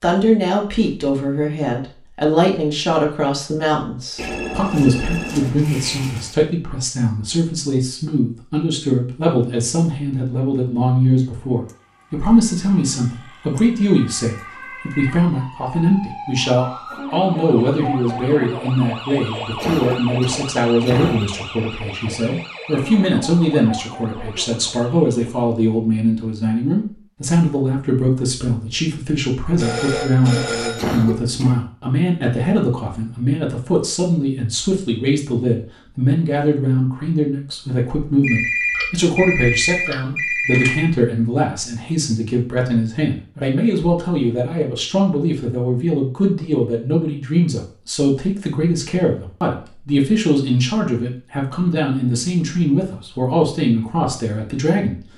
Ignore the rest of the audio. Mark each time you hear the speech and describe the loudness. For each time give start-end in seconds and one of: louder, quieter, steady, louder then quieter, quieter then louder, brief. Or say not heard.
0.0-55.0 steady.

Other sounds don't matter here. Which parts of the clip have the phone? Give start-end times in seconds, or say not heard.
4.2-6.3, 29.6-31.0, 38.2-40.9.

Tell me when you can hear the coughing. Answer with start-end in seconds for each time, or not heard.
19.6-21.3, 30.8-31.6.